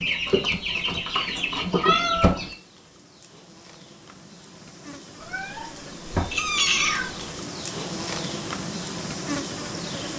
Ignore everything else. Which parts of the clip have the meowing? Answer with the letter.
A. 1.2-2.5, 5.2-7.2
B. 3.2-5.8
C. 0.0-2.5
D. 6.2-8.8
A.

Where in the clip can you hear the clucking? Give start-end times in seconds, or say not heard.
0.0-2.5.